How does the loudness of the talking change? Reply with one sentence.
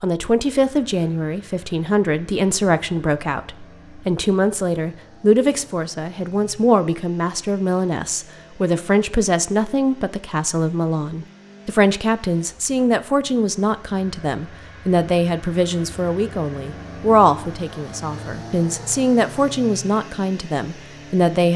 The volume of the talking stays about the same.